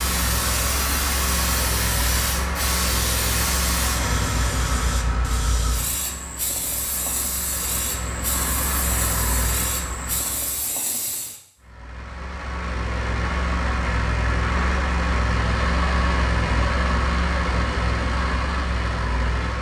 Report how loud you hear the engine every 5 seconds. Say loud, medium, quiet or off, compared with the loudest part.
loud, medium, loud, loud.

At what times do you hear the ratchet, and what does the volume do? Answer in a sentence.
You can't hear the ratchet here.